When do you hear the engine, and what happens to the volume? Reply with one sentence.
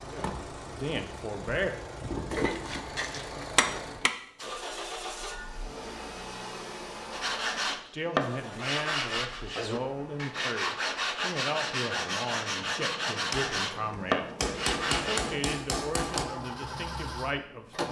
The engine can be heard from 0.0 to 17.8 s, getting quieter then louder.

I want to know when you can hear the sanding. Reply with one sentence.
The sanding can be heard from 7.1 to 15.3 s.